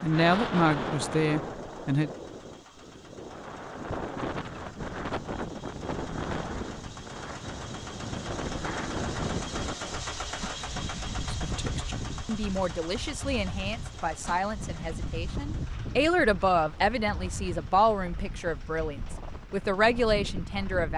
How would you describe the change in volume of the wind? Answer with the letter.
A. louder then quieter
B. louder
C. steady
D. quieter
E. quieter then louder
D.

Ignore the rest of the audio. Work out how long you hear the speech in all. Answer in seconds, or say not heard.
12 s.